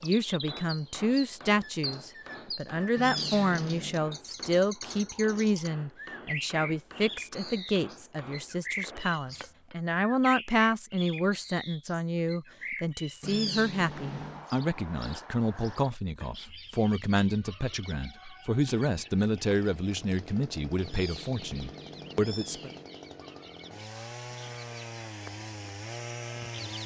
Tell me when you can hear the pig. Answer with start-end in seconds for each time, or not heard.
not heard.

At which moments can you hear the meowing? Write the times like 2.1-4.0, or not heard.
3.0-4.0, 13.2-14.4, 20.8-22.9.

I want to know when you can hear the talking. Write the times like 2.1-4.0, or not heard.
0.0-22.7.